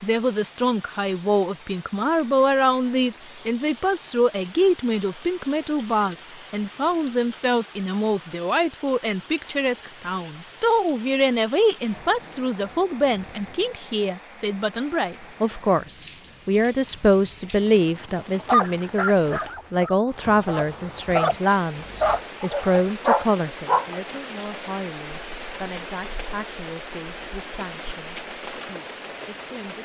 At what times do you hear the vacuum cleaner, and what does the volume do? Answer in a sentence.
You can't hear the vacuum cleaner here.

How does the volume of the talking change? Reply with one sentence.
The loudness of the talking goes down.